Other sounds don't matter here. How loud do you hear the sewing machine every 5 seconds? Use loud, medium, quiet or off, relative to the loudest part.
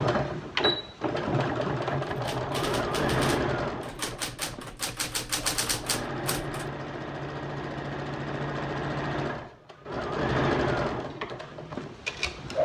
loud, medium, loud.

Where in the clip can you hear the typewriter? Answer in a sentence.
The typewriter can be heard from 2.1 to 6.7 s.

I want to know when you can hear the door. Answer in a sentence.
The door can't be heard in this clip.